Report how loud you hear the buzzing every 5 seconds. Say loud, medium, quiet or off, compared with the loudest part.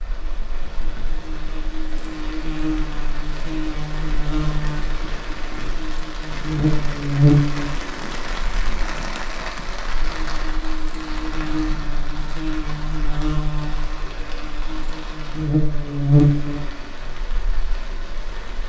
medium, loud, medium, loud.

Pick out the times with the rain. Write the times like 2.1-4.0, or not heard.
0.0-18.6.